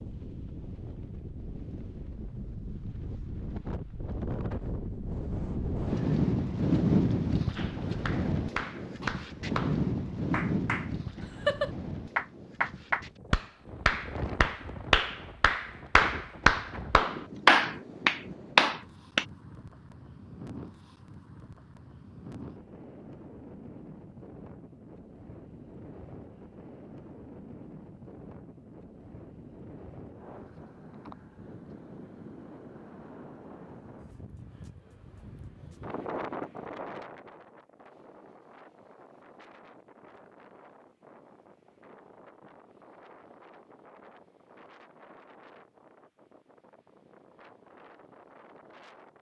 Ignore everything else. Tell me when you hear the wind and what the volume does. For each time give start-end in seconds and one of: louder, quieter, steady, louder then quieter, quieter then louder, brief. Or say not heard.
0.0-49.1 quieter.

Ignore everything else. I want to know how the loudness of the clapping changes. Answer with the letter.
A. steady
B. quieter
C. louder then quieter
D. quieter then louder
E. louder
E.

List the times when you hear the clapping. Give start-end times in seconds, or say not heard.
7.5-19.2.